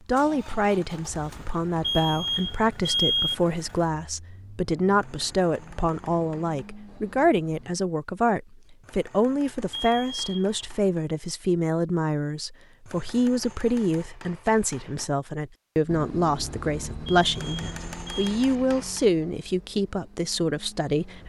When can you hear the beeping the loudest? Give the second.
3 s.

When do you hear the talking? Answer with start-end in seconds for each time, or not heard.
0.1-21.2.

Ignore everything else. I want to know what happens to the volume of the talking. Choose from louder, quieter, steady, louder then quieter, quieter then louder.
steady.